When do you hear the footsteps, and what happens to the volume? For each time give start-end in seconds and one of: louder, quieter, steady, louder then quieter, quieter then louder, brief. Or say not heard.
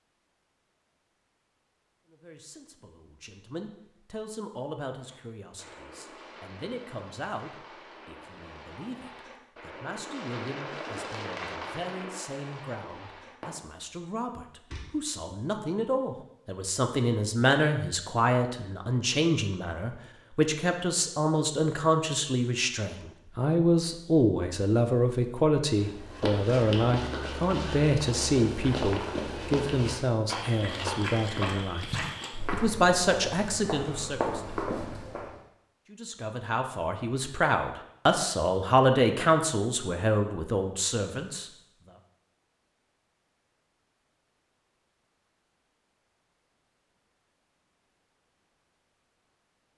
25.8-35.4 steady.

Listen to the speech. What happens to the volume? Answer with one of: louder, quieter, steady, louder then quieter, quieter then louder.
louder.